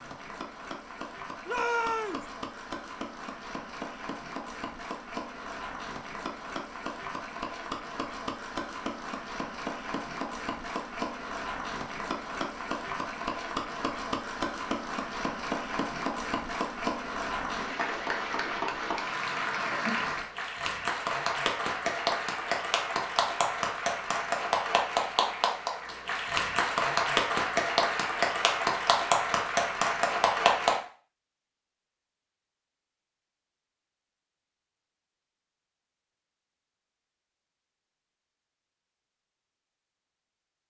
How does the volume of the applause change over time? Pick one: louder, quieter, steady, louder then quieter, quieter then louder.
louder.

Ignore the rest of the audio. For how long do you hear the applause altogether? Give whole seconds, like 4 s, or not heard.
31 s.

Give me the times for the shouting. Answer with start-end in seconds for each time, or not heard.
1.4-2.2.